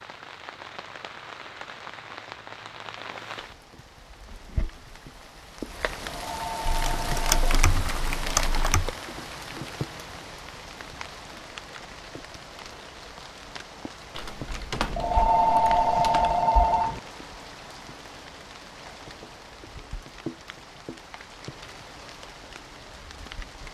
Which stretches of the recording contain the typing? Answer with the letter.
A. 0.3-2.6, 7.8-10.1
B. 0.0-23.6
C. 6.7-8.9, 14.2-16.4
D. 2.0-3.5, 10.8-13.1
C.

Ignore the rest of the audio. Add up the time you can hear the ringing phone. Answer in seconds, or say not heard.
4 s.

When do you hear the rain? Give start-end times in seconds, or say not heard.
0.0-23.6.